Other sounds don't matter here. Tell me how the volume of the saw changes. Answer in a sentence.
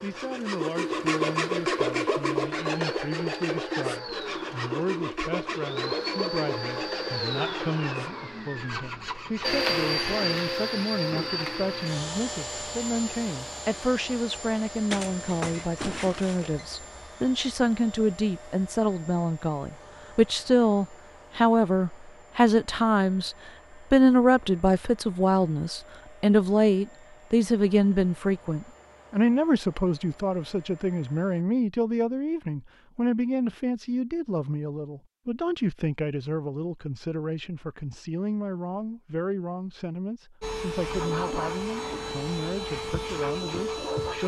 The volume of the saw goes down.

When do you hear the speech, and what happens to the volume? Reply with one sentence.
You can hear the speech from 0.0 to 44.2 s, getting louder then quieter.